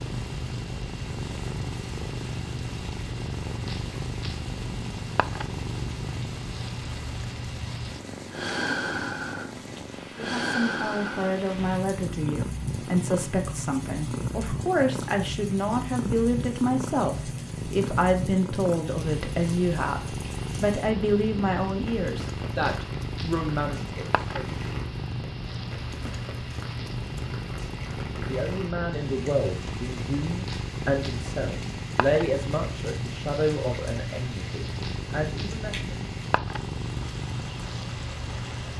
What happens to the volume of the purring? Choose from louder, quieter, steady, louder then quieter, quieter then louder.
steady.